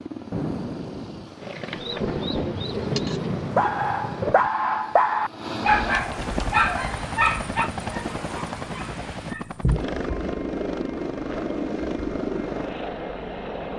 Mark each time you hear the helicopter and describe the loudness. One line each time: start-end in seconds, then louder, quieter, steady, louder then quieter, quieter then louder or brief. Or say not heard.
0.0-13.7 louder.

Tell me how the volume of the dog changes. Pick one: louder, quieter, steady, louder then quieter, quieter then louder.
quieter.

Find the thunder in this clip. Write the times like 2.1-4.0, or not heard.
0.3-4.5.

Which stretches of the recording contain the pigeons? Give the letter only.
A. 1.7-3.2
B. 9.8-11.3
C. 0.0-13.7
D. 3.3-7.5
A.